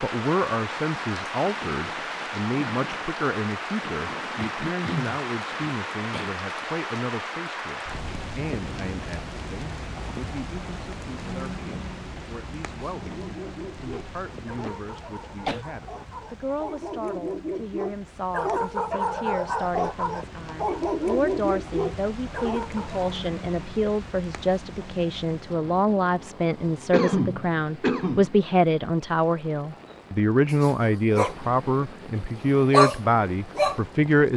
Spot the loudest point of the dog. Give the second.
33 s.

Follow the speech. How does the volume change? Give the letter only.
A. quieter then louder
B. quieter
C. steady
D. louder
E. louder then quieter
A.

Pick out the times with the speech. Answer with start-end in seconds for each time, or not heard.
0.0-34.3.